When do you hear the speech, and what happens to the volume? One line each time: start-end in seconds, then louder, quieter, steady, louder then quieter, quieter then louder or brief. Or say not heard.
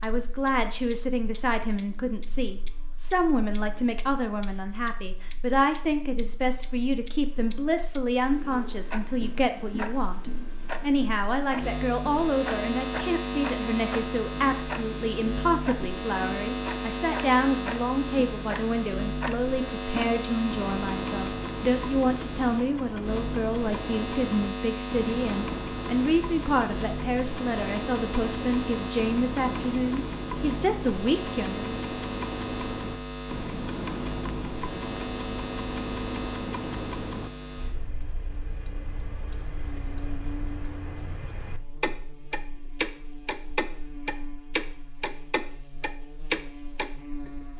0.0-31.6 steady.